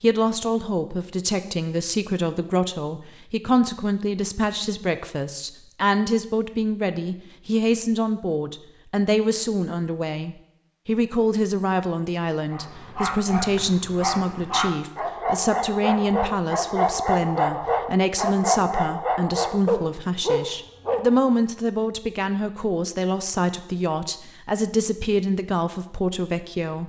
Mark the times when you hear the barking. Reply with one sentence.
You can hear the barking from 12.5 to 21.1 s.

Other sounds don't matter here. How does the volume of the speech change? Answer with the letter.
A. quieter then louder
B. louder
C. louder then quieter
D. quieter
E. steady
E.